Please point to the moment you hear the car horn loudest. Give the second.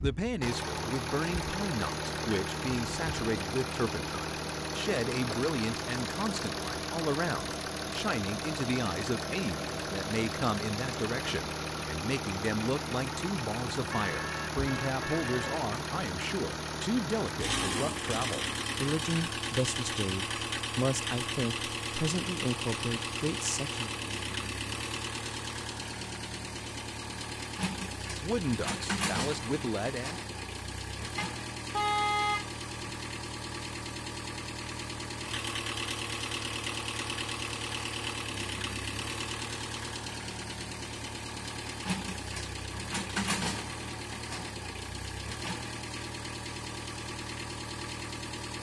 32 s.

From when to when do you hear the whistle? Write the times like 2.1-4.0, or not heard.
not heard.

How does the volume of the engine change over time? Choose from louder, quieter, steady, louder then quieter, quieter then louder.
steady.